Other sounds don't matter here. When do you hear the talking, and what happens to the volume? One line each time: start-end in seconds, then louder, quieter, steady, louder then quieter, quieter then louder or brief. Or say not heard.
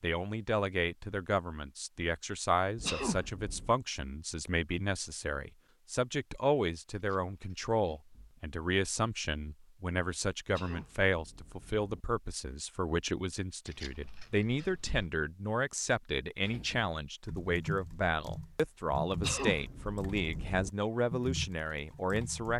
0.0-22.5 steady.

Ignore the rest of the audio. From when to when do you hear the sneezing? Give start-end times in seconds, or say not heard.
2.8-3.7, 10.4-12.1, 19.1-20.7.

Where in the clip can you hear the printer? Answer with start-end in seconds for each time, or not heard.
not heard.